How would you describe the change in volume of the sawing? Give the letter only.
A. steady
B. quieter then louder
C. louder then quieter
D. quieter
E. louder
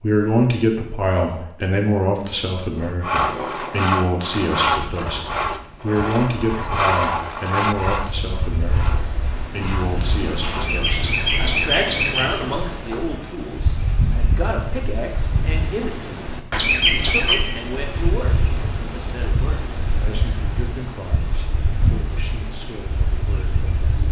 D.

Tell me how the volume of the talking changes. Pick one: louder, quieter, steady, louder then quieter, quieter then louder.
quieter.